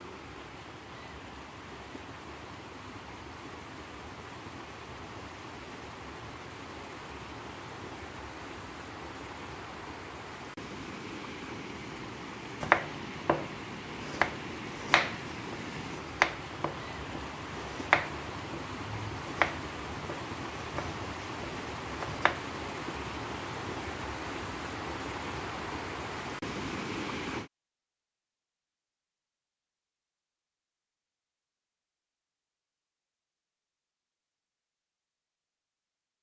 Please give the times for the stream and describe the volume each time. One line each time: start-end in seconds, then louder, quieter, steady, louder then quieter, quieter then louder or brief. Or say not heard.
0.0-27.5 louder.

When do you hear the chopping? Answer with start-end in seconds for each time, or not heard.
12.6-22.9.